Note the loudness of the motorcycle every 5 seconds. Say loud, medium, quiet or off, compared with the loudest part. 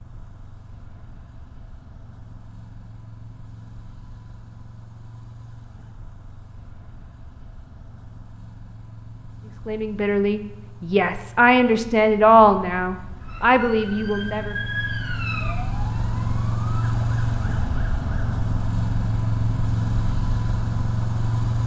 quiet, quiet, quiet, loud, loud.